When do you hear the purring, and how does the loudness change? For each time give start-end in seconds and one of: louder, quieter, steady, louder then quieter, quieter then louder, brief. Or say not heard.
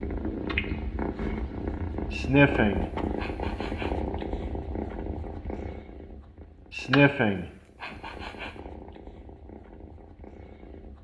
0.0-10.9 quieter.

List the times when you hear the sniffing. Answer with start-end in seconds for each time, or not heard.
2.1-3.9, 6.7-8.5.